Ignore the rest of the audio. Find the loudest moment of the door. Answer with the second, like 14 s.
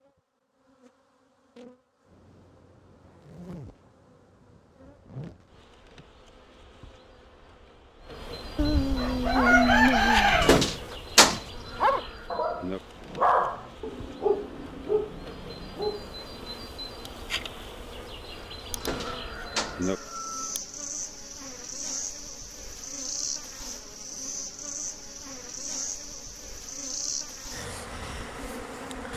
11 s.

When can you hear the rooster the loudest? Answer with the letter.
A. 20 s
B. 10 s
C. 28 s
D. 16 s
B.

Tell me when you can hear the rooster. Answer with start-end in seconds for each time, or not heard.
8.6-10.6, 18.7-20.6.